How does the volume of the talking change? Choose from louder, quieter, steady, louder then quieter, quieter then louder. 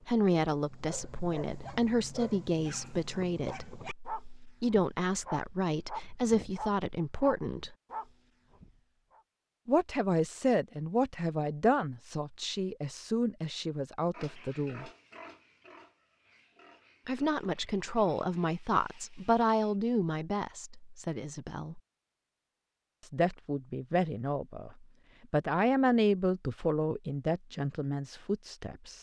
steady.